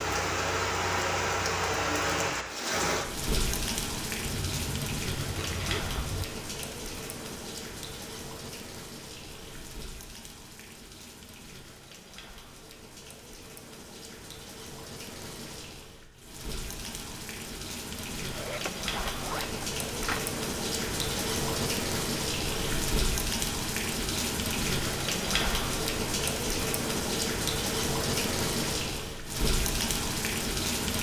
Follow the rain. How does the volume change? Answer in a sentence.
The loudness of the rain goes down, then up.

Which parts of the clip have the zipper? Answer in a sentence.
You can hear the zipper from 4.2 to 6.2 s and from 18.3 to 20.3 s.